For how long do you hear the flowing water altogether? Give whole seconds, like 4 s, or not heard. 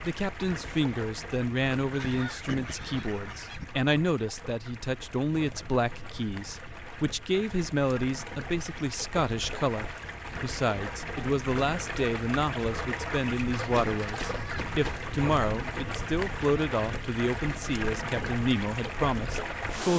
20 s.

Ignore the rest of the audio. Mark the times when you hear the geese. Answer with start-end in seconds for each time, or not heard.
1.9-3.7, 13.5-15.1.